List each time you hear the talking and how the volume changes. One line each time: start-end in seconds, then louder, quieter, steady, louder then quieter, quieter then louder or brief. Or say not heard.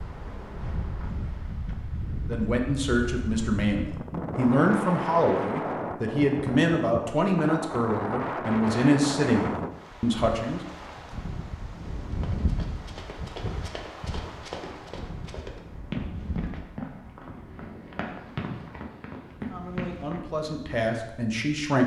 2.2-10.6 steady
19.4-21.8 brief.